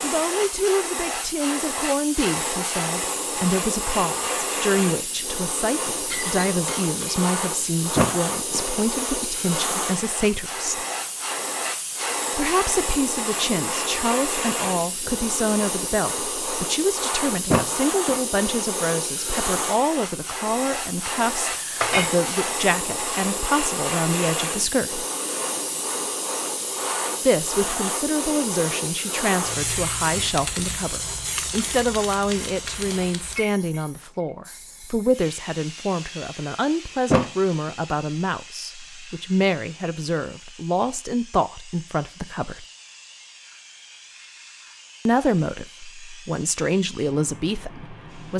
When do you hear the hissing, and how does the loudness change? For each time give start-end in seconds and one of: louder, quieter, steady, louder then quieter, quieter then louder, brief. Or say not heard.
0.0-48.3 quieter.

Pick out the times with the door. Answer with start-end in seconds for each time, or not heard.
8.0-8.7, 17.5-18.1, 37.1-37.7.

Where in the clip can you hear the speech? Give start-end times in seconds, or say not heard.
0.0-10.8, 12.3-25.1, 27.2-42.6, 45.0-48.3.